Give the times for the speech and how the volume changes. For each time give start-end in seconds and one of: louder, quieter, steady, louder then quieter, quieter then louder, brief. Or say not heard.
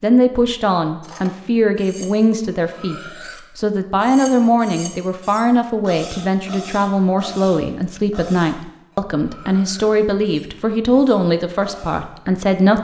0.0-12.7 steady.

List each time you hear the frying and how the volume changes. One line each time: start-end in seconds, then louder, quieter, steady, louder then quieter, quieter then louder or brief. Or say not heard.
not heard.